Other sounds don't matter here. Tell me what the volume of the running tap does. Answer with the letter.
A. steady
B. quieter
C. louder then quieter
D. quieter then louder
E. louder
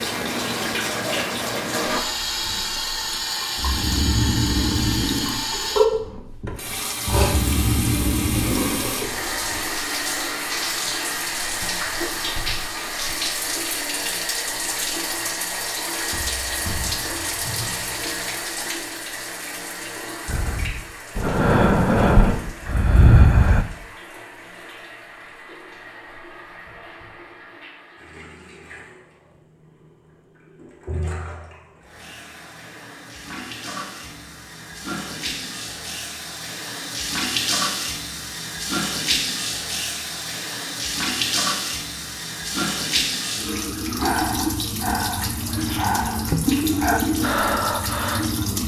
D.